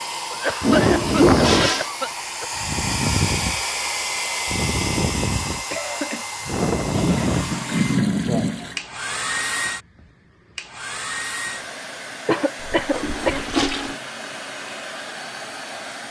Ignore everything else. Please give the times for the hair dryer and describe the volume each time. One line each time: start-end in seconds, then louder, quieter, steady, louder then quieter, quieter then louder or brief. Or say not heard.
0.0-16.0 quieter.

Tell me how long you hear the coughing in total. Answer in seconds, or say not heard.
4 s.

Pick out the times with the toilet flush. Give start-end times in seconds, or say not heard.
0.6-1.9, 6.9-8.8, 12.6-13.9.